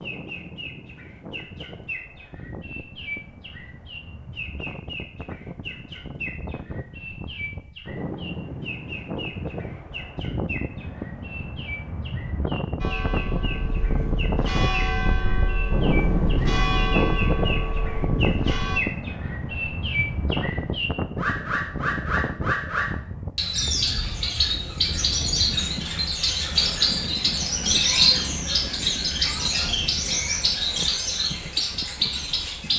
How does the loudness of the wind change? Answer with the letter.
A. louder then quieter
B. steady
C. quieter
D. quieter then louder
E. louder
A.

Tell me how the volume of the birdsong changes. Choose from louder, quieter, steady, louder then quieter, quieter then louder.
louder.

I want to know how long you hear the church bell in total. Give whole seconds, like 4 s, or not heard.
6 s.